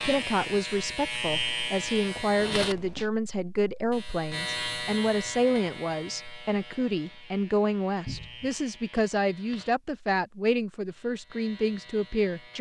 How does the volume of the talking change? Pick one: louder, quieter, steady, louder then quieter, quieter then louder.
steady.